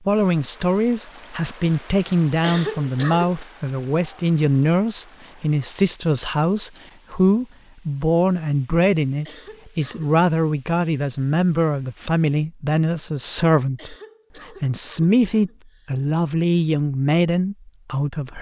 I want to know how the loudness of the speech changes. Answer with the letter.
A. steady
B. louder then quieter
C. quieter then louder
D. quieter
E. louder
A.